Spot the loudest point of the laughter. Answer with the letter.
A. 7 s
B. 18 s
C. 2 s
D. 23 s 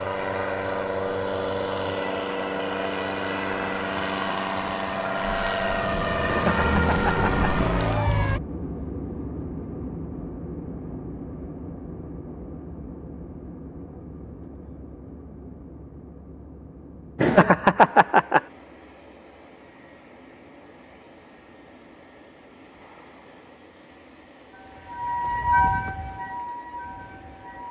B.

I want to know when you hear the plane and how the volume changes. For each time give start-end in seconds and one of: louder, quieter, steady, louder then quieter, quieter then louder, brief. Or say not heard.
0.0-27.6 quieter.